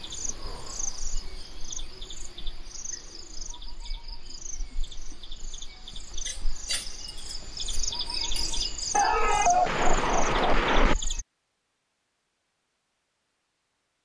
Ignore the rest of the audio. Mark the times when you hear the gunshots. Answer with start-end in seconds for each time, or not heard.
8.9-10.9.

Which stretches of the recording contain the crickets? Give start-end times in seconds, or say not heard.
0.0-11.2.